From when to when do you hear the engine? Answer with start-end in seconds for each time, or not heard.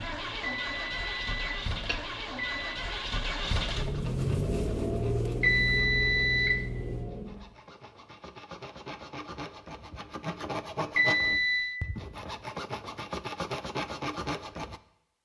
0.0-7.5.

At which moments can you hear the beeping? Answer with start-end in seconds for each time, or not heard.
0.4-2.8, 5.4-6.7, 10.9-11.8.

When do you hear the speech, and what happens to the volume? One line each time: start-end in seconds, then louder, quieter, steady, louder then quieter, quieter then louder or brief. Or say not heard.
not heard.